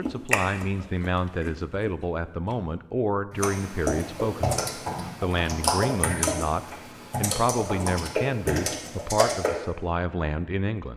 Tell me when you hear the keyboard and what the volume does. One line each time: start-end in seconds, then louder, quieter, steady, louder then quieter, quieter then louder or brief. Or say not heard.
3.3-9.6 steady.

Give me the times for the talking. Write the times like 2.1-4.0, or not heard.
0.0-10.9.